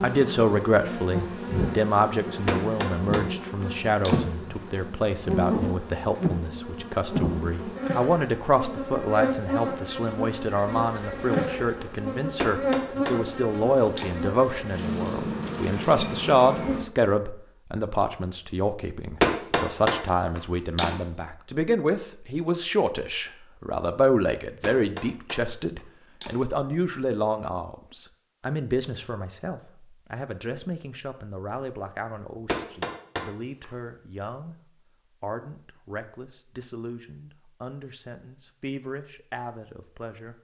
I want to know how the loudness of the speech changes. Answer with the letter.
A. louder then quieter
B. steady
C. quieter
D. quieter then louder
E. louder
C.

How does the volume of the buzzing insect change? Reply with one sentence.
The loudness of the buzzing insect stays about the same.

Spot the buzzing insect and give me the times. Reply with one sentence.
The buzzing insect can be heard from 0.0 to 16.8 s.